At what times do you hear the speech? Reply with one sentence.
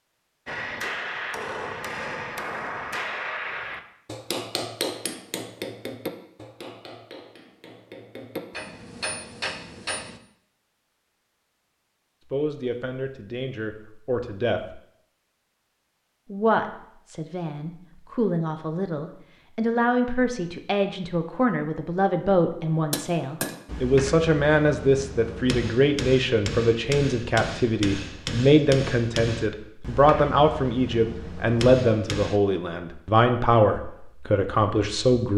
You can hear the speech from 12.3 to 14.8 s and from 16.3 to 35.3 s.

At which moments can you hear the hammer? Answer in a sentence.
You can hear the hammer from 0.5 to 10.2 s and from 22.7 to 32.4 s.